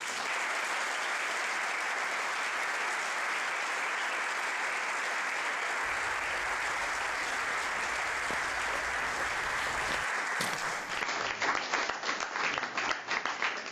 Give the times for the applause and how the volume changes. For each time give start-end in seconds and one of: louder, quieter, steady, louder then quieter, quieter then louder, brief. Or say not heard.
0.0-13.6 steady.